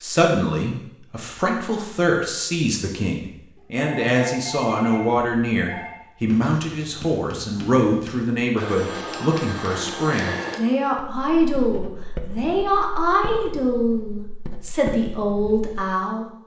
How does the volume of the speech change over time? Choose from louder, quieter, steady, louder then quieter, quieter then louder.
steady.